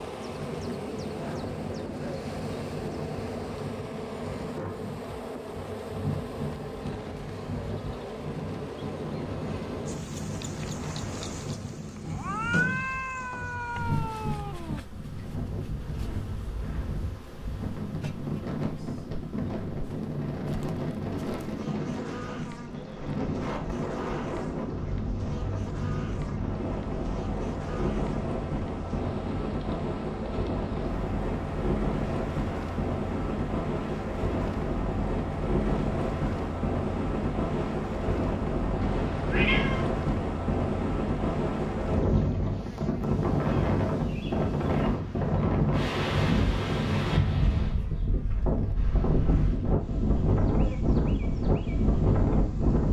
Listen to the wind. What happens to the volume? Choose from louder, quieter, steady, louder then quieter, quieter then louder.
louder.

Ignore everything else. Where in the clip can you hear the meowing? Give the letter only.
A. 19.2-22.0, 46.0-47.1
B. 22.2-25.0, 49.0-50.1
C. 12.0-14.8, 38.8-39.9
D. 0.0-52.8
C.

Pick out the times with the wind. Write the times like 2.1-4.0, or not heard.
0.0-52.8.